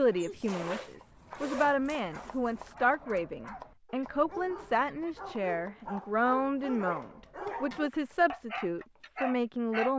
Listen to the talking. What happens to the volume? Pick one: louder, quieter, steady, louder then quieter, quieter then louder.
steady.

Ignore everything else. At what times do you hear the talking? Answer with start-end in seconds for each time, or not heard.
0.0-9.9.